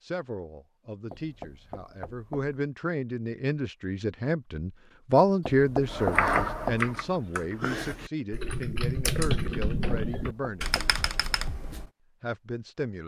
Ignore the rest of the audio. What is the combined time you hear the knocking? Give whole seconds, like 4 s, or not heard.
4 s.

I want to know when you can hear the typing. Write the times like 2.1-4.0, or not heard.
5.8-11.8.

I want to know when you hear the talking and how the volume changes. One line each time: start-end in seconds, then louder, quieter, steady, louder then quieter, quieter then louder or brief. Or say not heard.
0.0-10.8 louder then quieter
12.2-13.0 brief.